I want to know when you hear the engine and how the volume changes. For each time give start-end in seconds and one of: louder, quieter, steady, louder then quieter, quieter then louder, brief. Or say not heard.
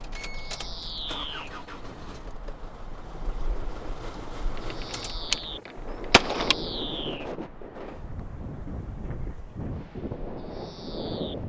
0.0-5.2 quieter then louder.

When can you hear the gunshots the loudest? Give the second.
6 s.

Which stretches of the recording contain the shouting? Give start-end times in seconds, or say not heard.
not heard.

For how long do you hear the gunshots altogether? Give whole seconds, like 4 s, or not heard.
2 s.